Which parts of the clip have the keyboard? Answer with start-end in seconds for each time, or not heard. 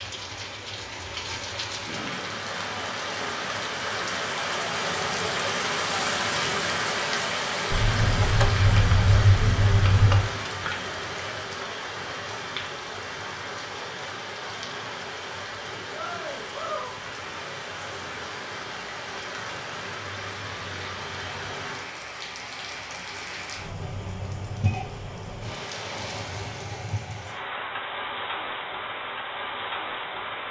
7.7-10.3.